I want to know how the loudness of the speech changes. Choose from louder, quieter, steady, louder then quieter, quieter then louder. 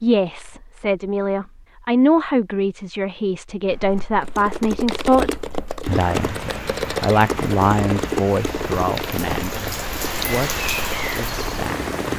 quieter.